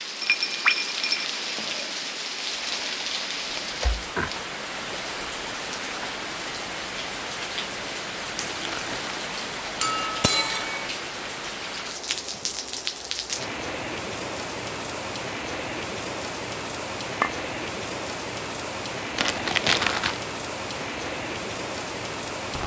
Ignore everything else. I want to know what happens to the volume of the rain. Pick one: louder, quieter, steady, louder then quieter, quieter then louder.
steady.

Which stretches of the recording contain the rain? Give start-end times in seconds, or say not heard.
0.0-22.6.